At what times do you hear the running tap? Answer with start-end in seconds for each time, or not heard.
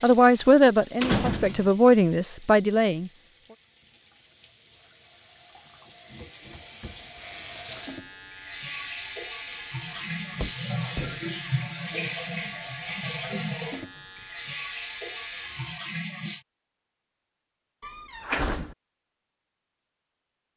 0.0-16.4.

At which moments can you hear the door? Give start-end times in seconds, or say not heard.
1.0-1.7, 10.3-11.2, 17.8-18.8.